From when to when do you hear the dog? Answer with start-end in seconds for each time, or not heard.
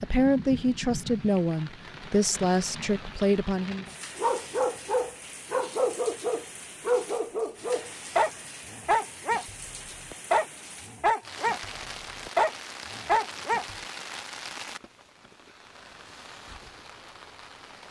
4.2-13.8.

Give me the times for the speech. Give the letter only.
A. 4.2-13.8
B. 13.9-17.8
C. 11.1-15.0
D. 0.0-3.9
D.